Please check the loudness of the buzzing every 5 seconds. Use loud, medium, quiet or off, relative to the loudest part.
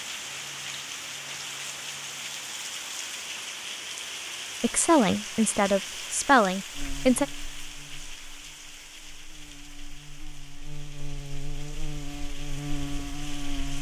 off, medium, loud.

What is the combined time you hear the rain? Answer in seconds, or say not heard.
14 s.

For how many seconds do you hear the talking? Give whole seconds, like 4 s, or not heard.
3 s.